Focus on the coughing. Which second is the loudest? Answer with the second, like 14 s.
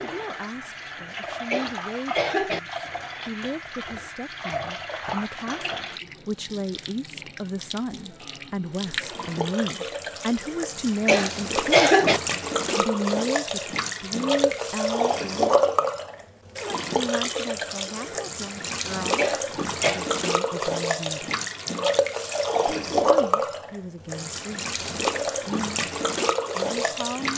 12 s.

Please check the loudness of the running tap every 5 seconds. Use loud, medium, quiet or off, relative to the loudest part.
medium, medium, loud, loud, loud, loud.